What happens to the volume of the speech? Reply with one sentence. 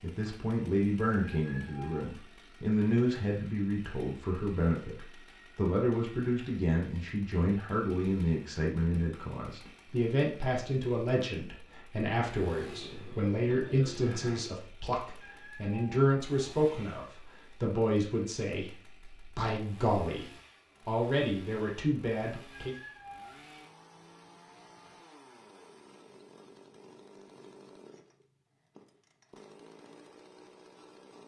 The volume of the speech stays about the same.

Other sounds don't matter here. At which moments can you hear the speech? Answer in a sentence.
You can hear the speech from 0.0 to 22.8 s.